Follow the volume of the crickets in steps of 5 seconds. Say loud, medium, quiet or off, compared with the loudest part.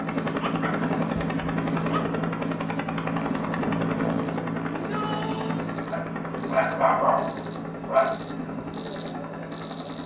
quiet, loud.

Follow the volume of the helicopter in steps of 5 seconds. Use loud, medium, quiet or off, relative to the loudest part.
loud, medium.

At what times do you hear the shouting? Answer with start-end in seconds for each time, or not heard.
4.7-5.6.